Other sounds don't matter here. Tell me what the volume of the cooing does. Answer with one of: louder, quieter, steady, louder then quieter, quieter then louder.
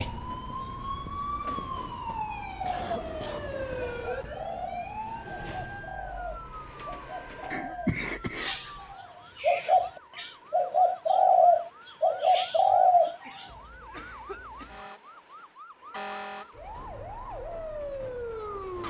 louder.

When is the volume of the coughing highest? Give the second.
8 s.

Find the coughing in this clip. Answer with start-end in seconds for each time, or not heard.
2.6-3.5, 7.5-8.6, 12.9-14.9.